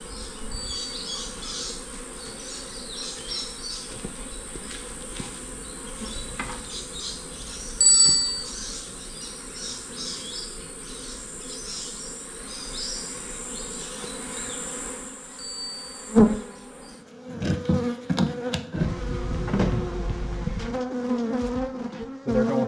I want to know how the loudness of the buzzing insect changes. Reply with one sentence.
The volume of the buzzing insect goes up.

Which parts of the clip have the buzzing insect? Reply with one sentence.
You can hear the buzzing insect from 0.0 to 22.6 s.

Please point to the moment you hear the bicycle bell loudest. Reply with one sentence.
The loudest moment of the bicycle bell is at 8 seconds.